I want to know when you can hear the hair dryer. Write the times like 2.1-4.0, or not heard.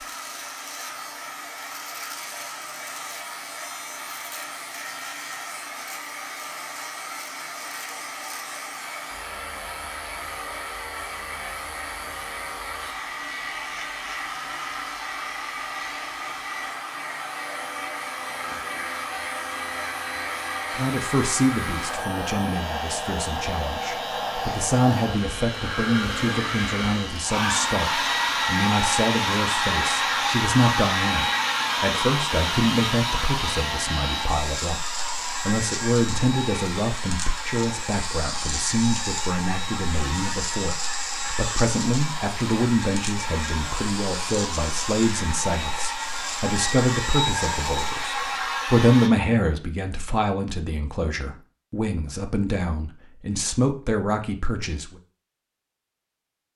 0.0-49.1.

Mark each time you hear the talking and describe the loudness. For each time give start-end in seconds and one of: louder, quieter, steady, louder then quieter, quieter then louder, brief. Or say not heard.
20.8-55.0 steady.